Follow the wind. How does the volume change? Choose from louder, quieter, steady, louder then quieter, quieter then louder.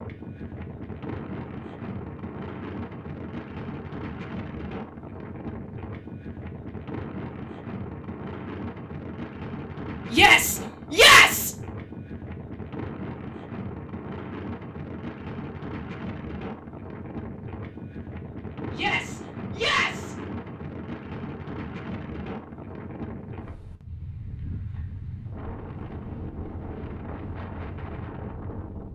steady.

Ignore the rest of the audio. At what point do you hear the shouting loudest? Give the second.
11 s.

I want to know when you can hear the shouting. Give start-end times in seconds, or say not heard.
10.1-11.5, 18.7-20.1.